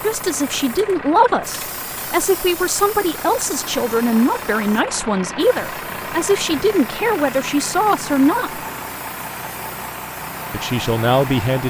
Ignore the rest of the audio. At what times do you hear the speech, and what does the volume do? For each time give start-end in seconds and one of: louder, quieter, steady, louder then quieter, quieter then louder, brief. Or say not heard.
0.0-8.6 steady
10.5-11.6 brief.